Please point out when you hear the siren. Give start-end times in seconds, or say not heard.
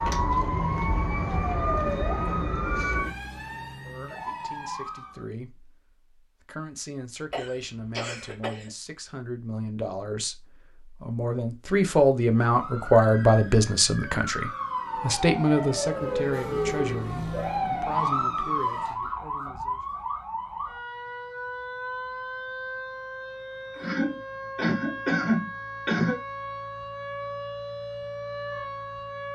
0.0-5.2, 12.4-29.3.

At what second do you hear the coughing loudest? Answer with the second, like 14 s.
25 s.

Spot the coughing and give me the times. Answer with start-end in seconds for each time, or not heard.
7.3-8.7, 23.8-26.1.